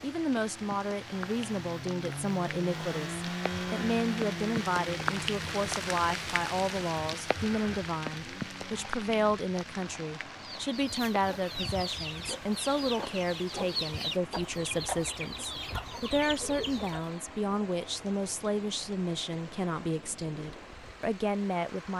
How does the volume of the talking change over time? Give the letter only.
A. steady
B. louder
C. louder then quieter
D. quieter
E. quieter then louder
A.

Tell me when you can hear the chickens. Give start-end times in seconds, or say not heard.
10.4-17.2.